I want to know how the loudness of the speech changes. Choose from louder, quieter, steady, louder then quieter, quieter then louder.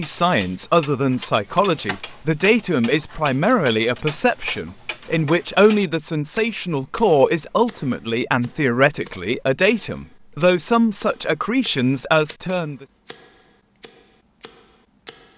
steady.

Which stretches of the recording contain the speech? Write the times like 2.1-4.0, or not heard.
0.0-12.8.